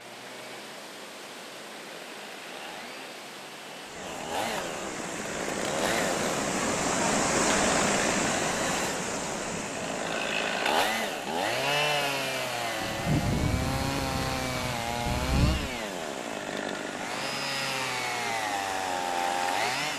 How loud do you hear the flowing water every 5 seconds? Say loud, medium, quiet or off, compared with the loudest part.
quiet, loud, quiet, quiet.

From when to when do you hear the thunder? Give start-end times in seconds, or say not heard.
12.8-15.8.